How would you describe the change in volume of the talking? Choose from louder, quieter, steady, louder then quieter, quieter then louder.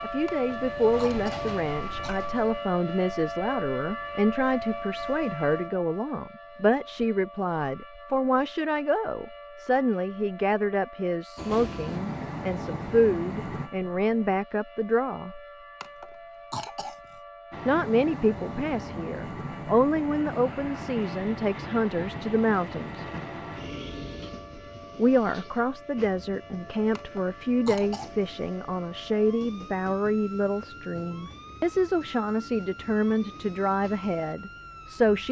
steady.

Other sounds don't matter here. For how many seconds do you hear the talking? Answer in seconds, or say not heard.
31 s.